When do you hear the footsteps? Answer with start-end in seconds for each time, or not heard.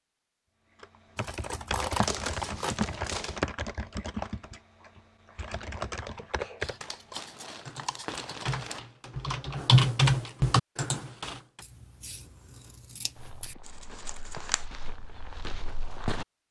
13.2-16.2.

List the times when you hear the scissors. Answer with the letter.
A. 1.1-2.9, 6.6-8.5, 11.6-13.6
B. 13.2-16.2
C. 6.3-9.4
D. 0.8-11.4
A.